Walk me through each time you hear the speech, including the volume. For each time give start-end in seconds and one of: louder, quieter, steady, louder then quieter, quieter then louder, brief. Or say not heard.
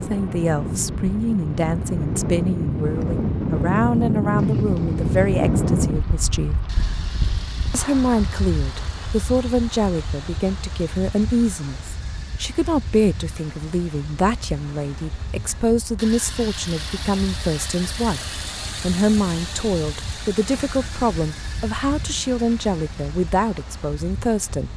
0.0-6.5 steady
7.7-24.7 steady.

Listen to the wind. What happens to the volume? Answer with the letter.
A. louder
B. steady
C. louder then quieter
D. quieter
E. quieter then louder
D.